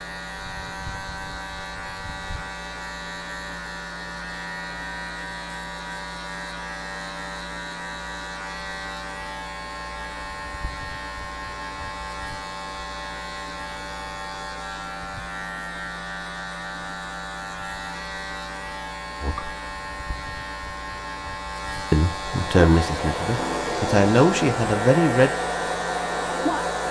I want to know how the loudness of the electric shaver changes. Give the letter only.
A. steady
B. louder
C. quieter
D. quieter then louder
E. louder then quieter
A.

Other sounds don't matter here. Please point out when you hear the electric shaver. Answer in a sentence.
The electric shaver can be heard from 0.0 to 26.8 s.